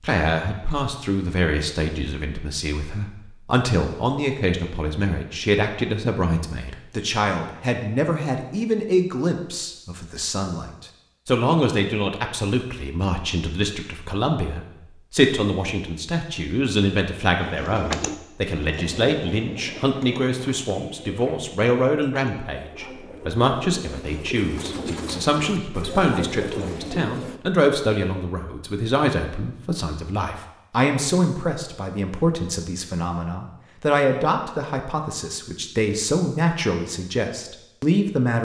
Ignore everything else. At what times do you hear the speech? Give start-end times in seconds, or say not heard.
0.0-38.3.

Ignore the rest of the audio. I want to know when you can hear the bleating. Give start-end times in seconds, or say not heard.
not heard.